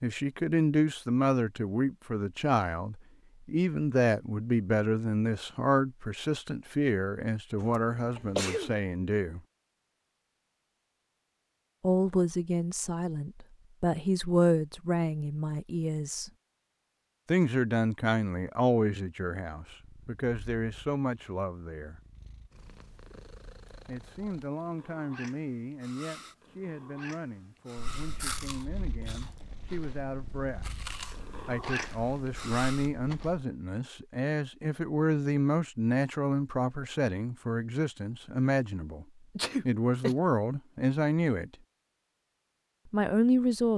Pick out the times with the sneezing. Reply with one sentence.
You can hear the sneezing from 7.6 to 8.8 s and from 39.4 to 40.1 s.